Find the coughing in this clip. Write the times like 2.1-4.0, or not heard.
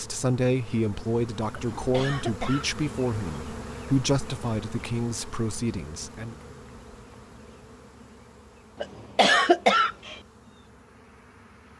1.6-2.9, 8.8-10.2.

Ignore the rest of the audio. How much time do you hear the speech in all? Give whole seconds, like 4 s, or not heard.
6 s.